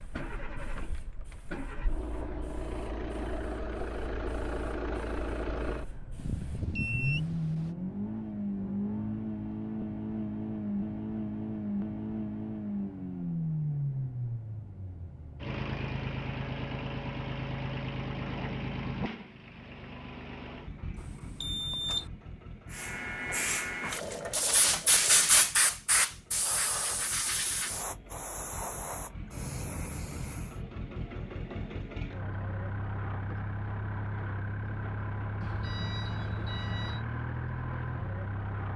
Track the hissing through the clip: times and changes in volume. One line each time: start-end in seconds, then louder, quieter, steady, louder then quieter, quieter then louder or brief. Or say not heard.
0.0-7.3 steady
22.6-30.6 louder then quieter.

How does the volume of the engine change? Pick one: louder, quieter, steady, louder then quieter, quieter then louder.
quieter then louder.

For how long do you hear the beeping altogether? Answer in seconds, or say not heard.
4 s.